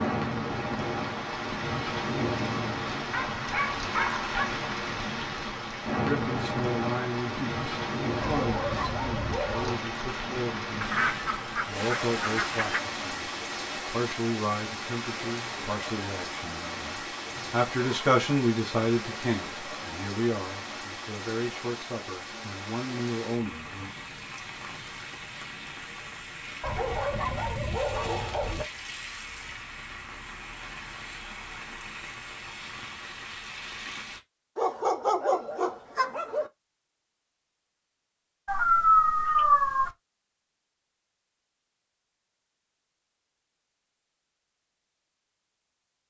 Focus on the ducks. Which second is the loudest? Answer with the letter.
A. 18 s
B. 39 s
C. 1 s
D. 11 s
D.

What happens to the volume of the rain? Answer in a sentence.
The loudness of the rain goes down.